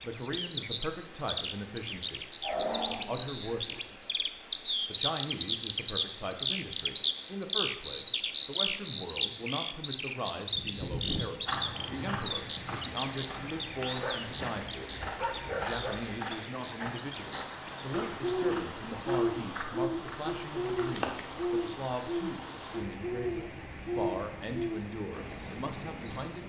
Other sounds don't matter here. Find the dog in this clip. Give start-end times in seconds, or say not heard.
2.4-3.8, 13.9-16.2.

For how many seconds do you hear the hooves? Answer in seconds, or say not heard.
11 s.